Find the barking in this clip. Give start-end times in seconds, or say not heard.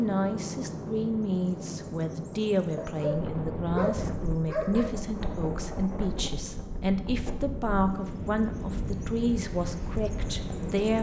2.8-4.9.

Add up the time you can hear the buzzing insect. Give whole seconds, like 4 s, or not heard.
not heard.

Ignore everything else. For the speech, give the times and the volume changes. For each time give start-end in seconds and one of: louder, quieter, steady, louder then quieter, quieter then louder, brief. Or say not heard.
0.0-10.9 steady.